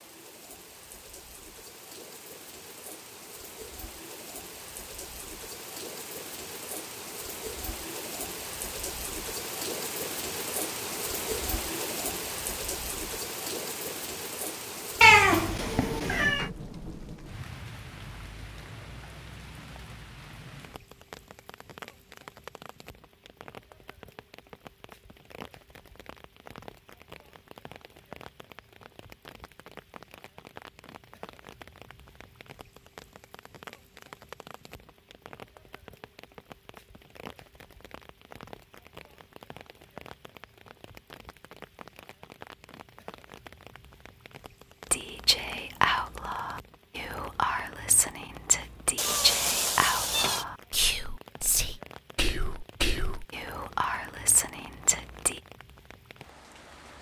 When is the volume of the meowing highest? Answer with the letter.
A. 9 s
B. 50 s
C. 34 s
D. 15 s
D.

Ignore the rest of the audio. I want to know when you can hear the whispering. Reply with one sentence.
The whispering can be heard from 44.9 to 55.4 s.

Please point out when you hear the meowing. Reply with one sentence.
You can hear the meowing from 15.0 to 16.5 s and from 49.0 to 50.5 s.